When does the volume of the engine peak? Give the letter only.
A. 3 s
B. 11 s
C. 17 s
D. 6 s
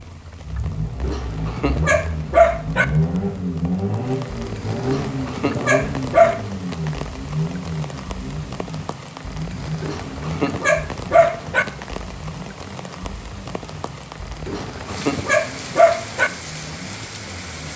A.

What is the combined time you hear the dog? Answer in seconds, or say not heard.
7 s.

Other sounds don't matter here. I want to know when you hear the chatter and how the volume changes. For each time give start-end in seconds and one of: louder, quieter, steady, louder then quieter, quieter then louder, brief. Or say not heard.
not heard.